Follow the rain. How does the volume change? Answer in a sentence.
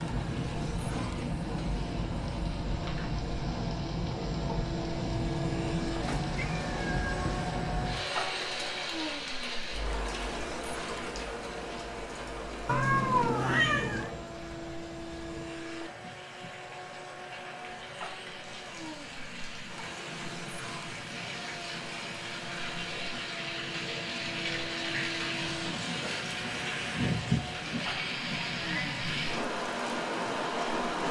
The volume of the rain goes down, then up.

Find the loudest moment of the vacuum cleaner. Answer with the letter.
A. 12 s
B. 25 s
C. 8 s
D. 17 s
C.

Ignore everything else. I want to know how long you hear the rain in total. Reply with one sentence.
The rain can be heard for 31 seconds in total.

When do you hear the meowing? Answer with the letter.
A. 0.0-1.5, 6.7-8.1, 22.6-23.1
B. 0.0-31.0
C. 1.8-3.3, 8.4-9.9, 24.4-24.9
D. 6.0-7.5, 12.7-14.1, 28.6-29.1
D.